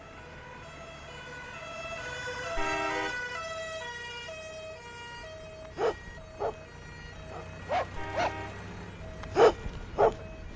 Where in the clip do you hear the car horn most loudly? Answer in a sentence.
The volume of the car horn peaks at 3 seconds.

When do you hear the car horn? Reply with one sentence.
The car horn can be heard from 2.5 to 3.2 s and from 8.0 to 8.6 s.